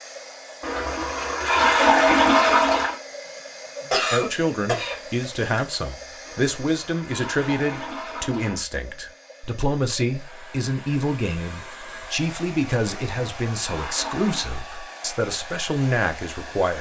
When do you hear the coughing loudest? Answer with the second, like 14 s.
4 s.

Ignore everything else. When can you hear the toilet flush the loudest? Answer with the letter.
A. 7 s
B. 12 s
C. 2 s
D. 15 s
C.